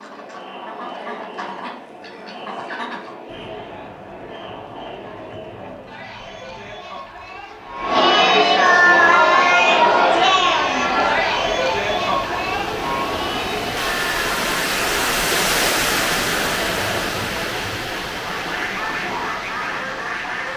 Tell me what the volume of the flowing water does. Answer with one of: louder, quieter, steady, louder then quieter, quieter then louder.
louder then quieter.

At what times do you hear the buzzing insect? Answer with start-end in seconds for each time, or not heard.
not heard.